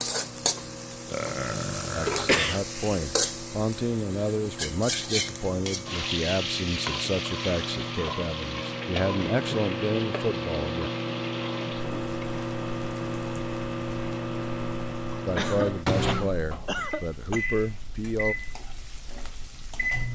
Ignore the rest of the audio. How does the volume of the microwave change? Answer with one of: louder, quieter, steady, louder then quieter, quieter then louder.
louder.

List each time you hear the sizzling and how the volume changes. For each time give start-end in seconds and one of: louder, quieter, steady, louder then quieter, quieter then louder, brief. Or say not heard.
0.0-20.0 quieter.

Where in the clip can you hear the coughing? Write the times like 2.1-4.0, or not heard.
2.2-3.0, 15.3-17.4.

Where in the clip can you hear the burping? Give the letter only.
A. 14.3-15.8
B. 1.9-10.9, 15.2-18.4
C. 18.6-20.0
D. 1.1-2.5
D.